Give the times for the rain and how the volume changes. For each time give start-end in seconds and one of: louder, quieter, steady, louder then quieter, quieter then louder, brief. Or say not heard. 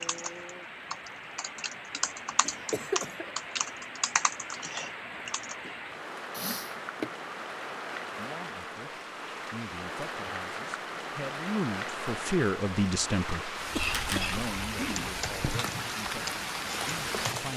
0.0-17.5 louder.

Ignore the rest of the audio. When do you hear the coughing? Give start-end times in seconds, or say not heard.
1.9-3.4, 6.3-7.1, 13.7-15.6.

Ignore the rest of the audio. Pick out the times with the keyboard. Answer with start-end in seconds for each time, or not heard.
0.0-5.5, 13.8-17.5.